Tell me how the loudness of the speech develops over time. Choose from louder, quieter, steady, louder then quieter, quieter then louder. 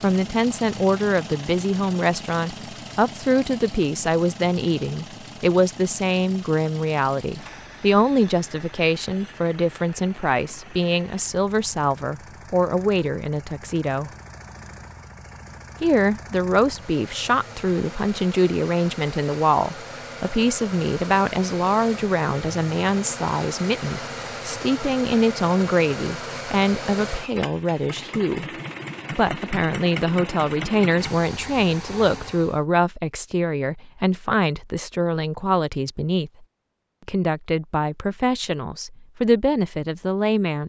steady.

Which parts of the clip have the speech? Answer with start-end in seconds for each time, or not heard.
0.0-14.1, 15.8-28.4, 29.1-36.3, 37.0-40.6.